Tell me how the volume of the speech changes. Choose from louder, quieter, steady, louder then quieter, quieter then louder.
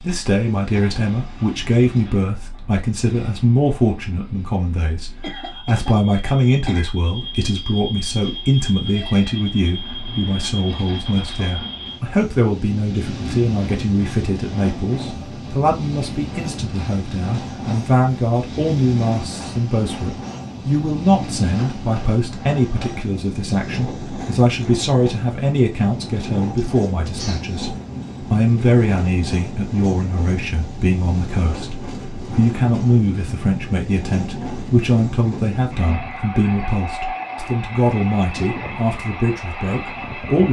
steady.